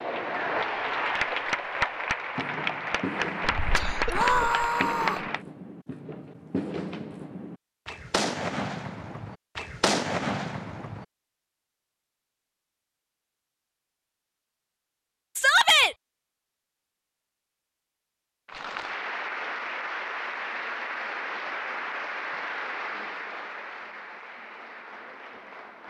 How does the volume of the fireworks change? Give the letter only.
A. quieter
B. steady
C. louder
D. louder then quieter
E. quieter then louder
C.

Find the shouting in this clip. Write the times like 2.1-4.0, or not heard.
4.1-5.2, 15.3-15.9.